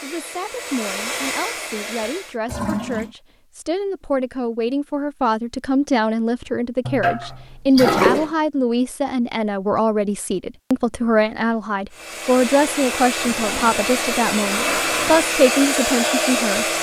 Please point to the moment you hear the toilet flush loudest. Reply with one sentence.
The loudest moment of the toilet flush is at 8 seconds.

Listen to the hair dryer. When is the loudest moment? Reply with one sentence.
The volume of the hair dryer peaks at 16 seconds.